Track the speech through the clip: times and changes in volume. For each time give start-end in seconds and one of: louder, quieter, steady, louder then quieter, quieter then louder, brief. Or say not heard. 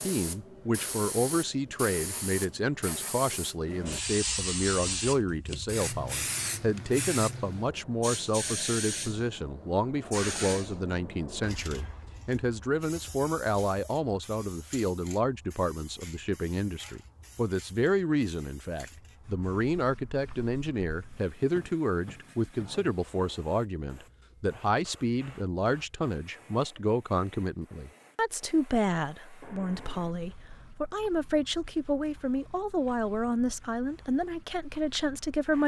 0.1-35.6 steady.